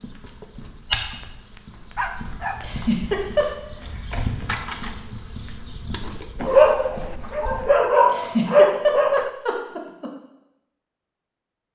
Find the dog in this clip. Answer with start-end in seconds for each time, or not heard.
1.1-2.7, 6.4-9.3.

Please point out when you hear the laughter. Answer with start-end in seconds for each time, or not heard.
2.6-3.5, 8.1-10.1.